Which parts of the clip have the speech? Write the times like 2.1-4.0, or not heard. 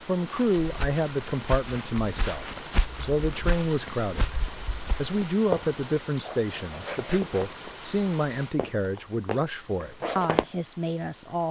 0.0-2.5, 3.0-4.3, 5.0-11.4.